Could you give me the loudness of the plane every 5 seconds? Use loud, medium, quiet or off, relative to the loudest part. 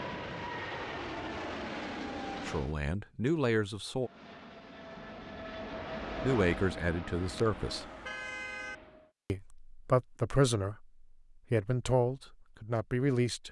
loud, loud, off.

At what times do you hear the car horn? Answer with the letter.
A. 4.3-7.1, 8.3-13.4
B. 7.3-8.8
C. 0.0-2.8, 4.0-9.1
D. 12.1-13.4
B.